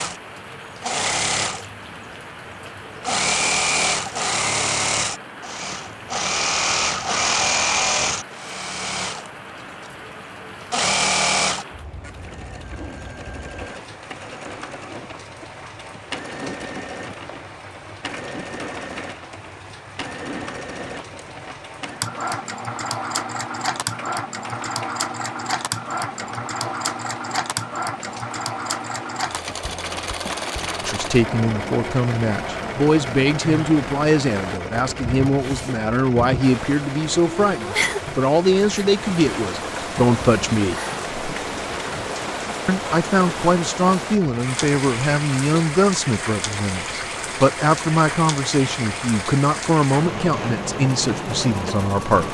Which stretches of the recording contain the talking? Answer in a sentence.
The talking can be heard from 30.8 to 40.8 s and from 42.6 to 52.2 s.